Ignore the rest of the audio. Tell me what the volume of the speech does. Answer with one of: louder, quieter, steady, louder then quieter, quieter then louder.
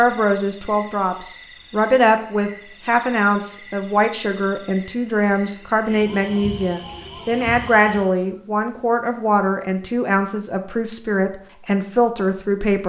steady.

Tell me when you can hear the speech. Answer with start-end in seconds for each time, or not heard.
0.0-12.8.